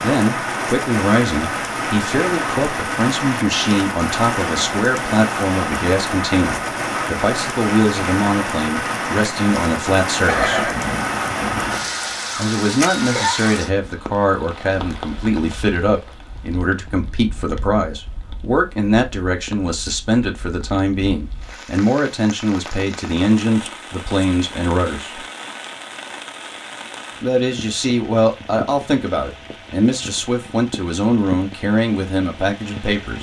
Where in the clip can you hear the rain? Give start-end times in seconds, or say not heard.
0.0-33.1.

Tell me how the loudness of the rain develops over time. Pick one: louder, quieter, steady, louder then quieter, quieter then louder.
quieter.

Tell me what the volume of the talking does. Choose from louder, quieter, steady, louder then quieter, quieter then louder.
steady.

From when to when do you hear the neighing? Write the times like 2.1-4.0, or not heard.
10.2-11.9.